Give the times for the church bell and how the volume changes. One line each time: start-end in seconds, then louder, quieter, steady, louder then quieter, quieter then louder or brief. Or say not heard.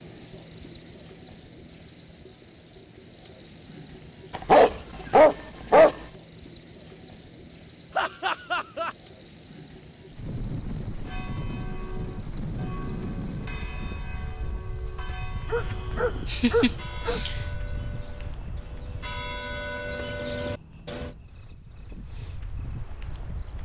11.0-21.1 louder.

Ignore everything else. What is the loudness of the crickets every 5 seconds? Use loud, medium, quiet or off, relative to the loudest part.
loud, loud, medium, quiet, quiet.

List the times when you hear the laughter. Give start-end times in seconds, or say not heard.
8.0-8.9, 16.2-17.4.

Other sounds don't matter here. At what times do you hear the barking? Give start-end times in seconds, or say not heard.
4.3-6.0, 15.5-17.2.